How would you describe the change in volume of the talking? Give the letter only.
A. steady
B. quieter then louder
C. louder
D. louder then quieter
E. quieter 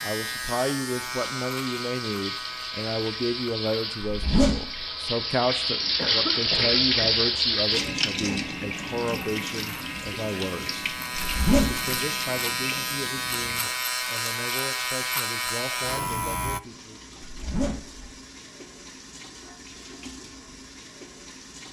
E.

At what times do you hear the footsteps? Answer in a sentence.
The footsteps can't be heard in this clip.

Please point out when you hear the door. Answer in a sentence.
You can't hear the door here.